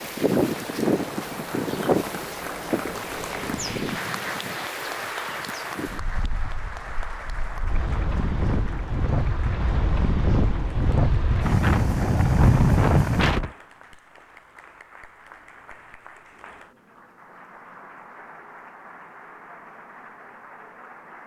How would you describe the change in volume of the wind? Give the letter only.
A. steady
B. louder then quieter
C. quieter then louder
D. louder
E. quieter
C.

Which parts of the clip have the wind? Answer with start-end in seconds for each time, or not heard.
0.0-13.5.